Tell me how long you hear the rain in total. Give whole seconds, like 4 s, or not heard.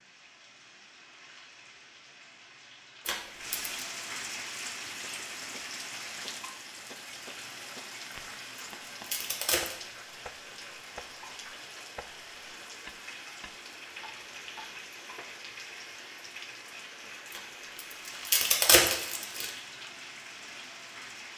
21 s.